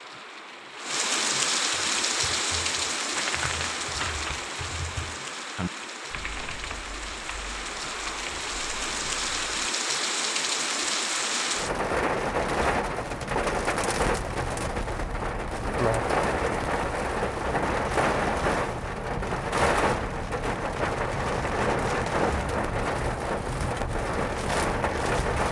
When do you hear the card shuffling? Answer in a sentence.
The card shuffling can be heard from 3.1 to 4.5 s.